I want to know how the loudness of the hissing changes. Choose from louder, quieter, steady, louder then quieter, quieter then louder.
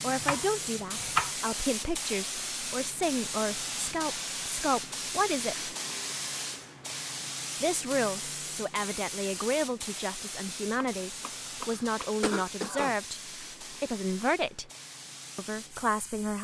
quieter.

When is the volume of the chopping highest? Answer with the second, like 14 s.
1 s.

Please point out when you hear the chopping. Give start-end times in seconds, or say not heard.
0.2-1.4, 10.7-12.1.